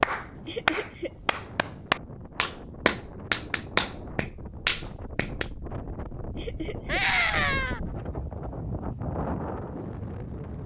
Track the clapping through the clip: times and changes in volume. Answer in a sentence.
The clapping can be heard from 0.0 to 5.5 s, at a steady volume.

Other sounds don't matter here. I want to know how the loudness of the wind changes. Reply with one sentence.
The loudness of the wind goes up.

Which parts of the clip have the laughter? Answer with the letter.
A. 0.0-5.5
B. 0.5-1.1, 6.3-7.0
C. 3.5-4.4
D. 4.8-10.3
B.